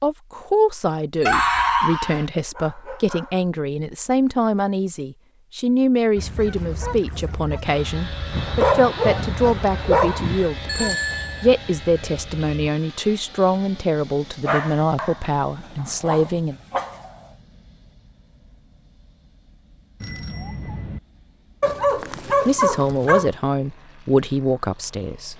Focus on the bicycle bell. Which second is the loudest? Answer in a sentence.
The volume of the bicycle bell peaks at 11 seconds.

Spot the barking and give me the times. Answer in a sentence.
The barking can be heard from 1.2 to 3.3 s, from 8.3 to 10.5 s, from 14.4 to 15.2 s, from 15.8 to 17.1 s and from 21.6 to 23.3 s.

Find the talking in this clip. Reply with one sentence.
The talking can be heard from 0.0 to 16.6 s and from 22.4 to 25.3 s.